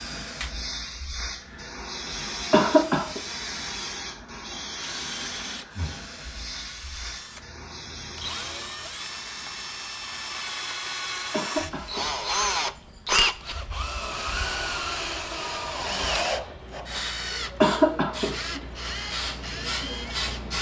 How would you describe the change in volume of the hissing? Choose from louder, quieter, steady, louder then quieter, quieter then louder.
quieter then louder.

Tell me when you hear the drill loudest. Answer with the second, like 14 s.
13 s.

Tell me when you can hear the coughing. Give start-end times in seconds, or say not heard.
2.5-3.2, 11.3-12.1, 17.6-18.4.